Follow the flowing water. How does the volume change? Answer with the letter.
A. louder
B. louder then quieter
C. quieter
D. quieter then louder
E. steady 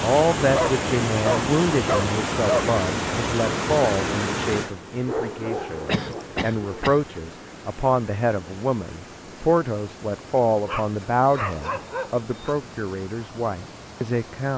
C.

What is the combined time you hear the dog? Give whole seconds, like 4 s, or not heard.
6 s.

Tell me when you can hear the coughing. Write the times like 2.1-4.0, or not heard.
5.8-7.0.